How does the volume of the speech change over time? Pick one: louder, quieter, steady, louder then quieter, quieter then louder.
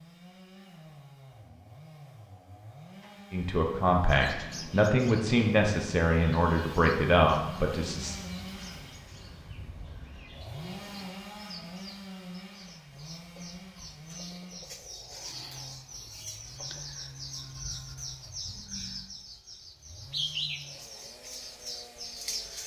steady.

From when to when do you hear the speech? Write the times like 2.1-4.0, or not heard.
3.3-8.2.